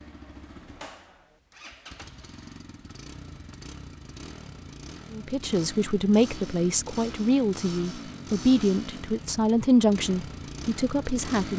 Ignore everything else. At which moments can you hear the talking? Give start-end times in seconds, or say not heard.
5.1-11.5.